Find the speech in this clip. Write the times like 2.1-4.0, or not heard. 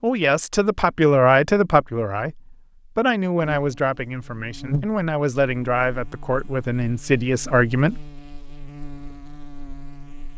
0.0-8.0.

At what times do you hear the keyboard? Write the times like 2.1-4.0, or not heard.
not heard.